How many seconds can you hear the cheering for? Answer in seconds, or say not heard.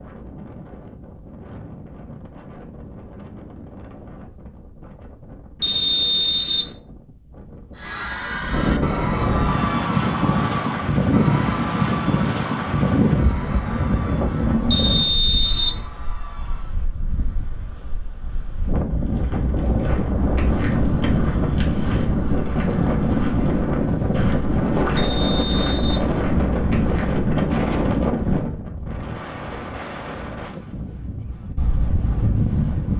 9 s.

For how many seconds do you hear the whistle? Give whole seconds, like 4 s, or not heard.
3 s.